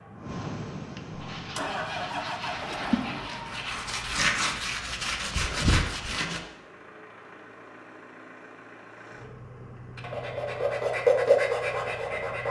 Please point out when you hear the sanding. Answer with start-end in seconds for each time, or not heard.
1.2-6.4, 9.9-12.4.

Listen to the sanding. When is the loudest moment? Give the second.
11 s.